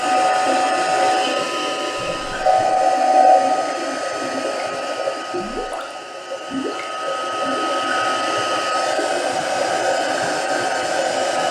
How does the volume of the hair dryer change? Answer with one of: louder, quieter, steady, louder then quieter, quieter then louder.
quieter then louder.